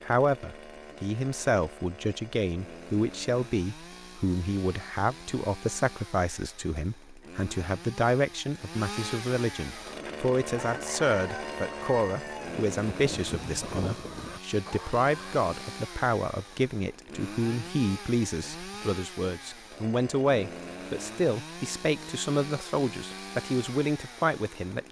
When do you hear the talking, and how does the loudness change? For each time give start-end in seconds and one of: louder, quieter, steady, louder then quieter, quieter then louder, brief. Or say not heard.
0.0-24.8 steady.